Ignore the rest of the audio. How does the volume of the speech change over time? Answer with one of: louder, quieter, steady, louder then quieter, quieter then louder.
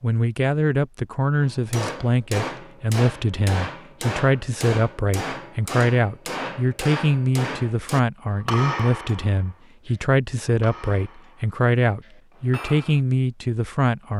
steady.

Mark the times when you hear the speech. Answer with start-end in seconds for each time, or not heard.
0.0-14.1.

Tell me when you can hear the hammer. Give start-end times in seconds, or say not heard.
1.4-13.0.